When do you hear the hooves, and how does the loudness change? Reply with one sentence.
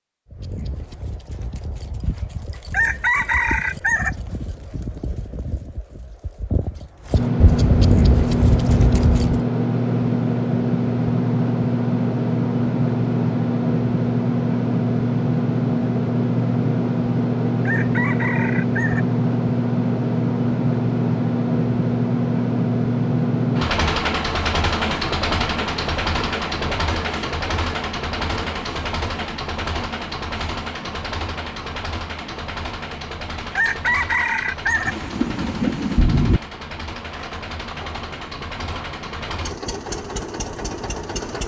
The hooves can be heard from 0.3 to 9.4 s, getting louder.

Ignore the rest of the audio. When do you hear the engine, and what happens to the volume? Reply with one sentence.
The engine can be heard from 7.1 to 41.4 s, getting quieter.